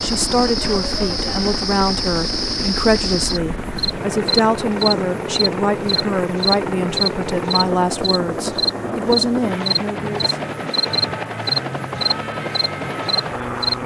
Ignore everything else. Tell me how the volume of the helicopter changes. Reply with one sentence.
The volume of the helicopter stays about the same.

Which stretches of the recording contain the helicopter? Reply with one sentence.
The helicopter can be heard from 0.0 to 13.8 s.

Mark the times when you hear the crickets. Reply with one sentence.
You can hear the crickets from 0.0 to 13.8 s.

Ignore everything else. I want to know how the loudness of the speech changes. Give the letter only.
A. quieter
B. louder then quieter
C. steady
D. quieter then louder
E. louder
C.